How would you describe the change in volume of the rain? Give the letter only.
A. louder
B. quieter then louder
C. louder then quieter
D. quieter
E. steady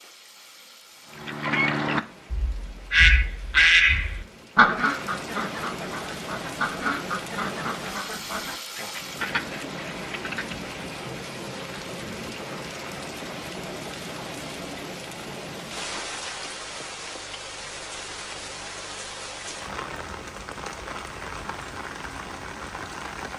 A.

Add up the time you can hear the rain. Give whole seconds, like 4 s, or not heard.
23 s.